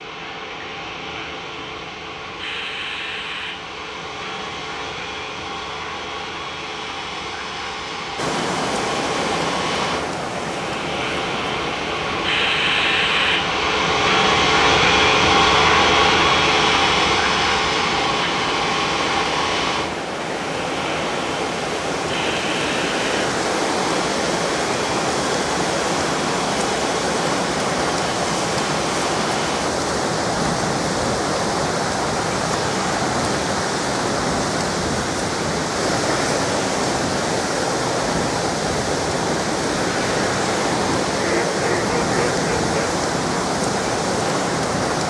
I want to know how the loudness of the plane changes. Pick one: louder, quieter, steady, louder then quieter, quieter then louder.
louder then quieter.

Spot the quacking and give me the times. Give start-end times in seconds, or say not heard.
41.1-42.9.